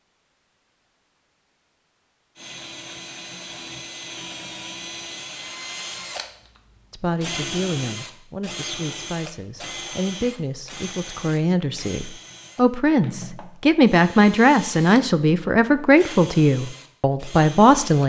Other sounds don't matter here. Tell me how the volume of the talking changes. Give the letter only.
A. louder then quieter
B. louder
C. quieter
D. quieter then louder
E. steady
B.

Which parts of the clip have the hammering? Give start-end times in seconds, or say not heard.
not heard.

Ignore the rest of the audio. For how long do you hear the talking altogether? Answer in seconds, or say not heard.
11 s.